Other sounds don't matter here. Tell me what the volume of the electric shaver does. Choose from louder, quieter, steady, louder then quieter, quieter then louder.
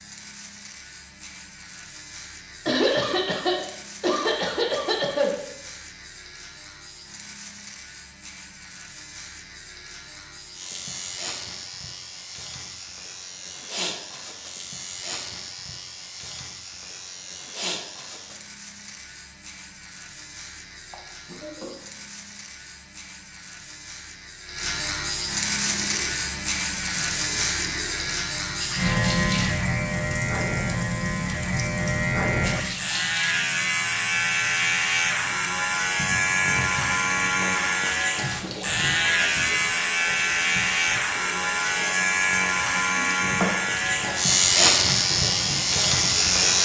louder.